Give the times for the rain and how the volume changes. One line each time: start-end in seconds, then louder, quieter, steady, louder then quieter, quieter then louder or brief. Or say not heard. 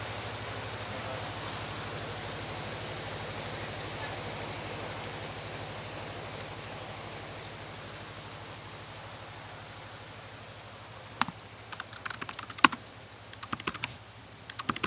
0.0-14.8 quieter.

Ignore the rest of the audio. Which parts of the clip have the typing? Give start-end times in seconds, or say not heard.
11.2-14.8.